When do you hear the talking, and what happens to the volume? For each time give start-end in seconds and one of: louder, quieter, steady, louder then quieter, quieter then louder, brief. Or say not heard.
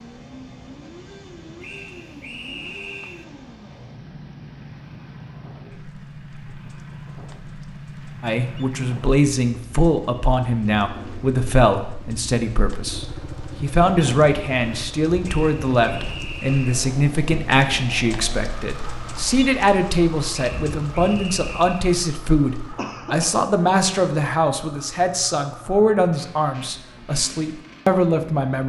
8.2-28.6 steady.